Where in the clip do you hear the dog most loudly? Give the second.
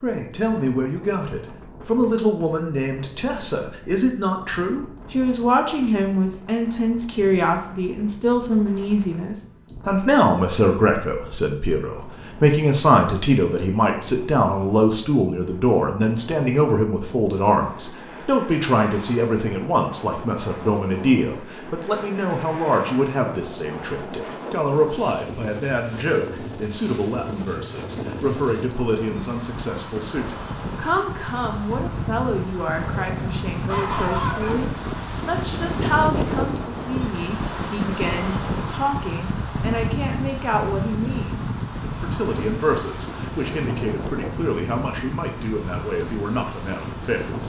34 s.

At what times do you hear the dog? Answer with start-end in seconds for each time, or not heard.
32.8-34.6.